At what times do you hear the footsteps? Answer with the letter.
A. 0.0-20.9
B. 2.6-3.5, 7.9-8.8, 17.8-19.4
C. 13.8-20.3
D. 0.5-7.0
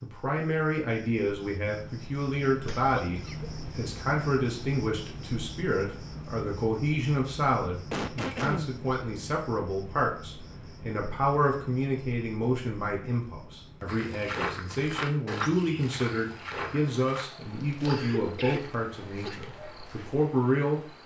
C.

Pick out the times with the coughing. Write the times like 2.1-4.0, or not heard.
2.6-3.5, 7.9-8.8, 17.8-19.4.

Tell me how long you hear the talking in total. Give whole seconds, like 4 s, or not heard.
21 s.